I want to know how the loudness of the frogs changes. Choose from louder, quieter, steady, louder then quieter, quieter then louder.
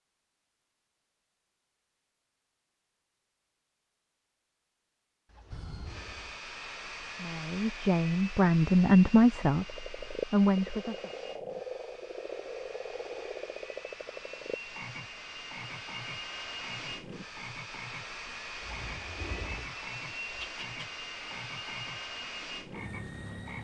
quieter.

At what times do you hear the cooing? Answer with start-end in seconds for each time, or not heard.
5.2-6.4, 18.6-20.9.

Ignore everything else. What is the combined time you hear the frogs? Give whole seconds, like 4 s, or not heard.
14 s.